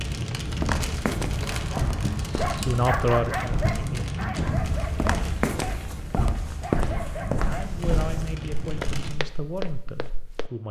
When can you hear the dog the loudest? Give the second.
3 s.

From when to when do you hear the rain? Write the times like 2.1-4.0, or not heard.
0.0-9.2.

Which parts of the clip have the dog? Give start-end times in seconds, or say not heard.
1.2-7.8.